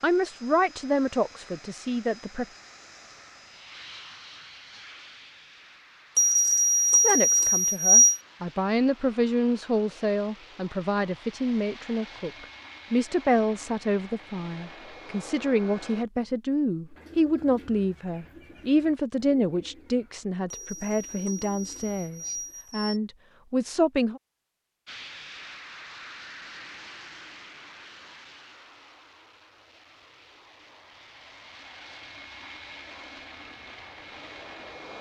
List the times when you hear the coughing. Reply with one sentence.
The coughing can't be heard in this clip.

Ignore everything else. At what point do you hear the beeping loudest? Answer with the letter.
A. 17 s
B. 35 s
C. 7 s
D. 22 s
C.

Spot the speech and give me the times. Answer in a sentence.
The speech can be heard from 0.0 to 2.5 s and from 7.0 to 24.2 s.